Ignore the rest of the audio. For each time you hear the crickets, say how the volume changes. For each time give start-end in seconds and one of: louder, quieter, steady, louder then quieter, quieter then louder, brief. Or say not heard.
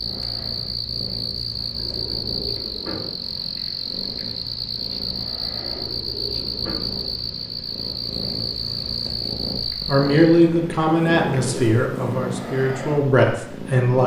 0.0-10.4 steady.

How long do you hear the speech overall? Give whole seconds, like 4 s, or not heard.
4 s.